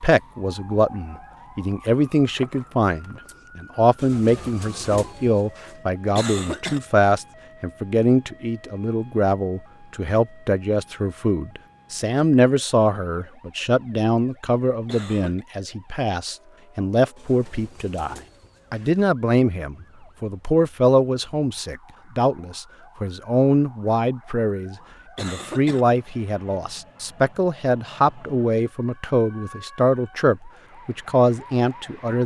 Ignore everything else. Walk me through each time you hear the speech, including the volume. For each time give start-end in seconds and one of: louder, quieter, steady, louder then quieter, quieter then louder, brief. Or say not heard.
0.0-32.2 steady.